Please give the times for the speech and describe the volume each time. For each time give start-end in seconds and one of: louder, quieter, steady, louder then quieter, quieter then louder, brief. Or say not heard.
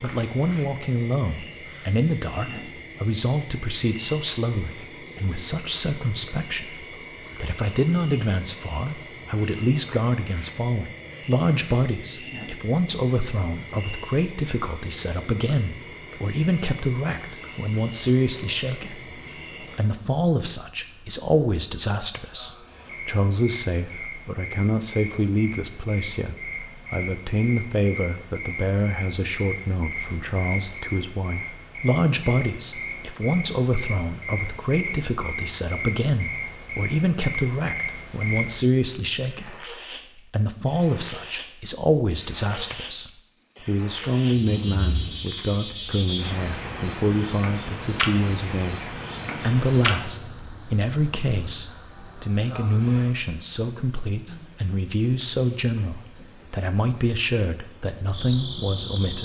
0.0-59.2 steady.